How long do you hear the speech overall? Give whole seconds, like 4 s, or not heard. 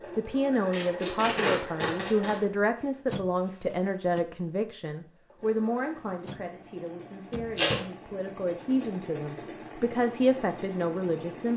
11 s.